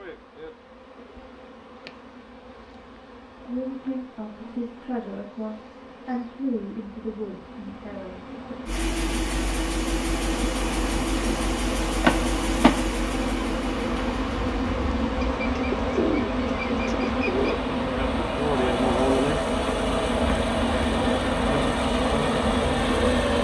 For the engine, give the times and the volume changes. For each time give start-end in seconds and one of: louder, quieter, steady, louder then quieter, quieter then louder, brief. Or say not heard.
8.7-23.3 quieter then louder.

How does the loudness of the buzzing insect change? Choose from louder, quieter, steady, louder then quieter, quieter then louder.
louder.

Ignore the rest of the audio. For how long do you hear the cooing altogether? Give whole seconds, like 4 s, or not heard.
2 s.